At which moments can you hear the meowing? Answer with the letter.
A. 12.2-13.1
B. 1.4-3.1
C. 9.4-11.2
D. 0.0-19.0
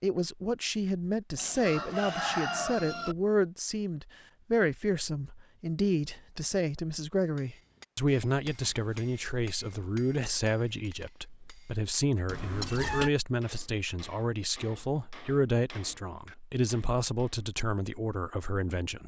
A.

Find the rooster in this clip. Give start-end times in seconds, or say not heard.
1.4-3.1.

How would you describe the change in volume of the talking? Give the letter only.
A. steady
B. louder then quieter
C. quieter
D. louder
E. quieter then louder
A.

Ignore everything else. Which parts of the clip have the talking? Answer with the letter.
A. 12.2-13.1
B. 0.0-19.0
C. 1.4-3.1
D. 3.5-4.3
B.